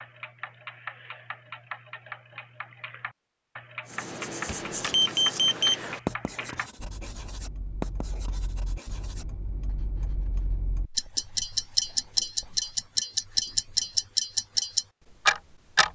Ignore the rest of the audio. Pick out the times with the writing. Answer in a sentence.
You can hear the writing from 3.9 to 12.8 s.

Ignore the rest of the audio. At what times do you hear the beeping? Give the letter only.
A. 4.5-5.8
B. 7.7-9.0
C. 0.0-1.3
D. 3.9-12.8
A.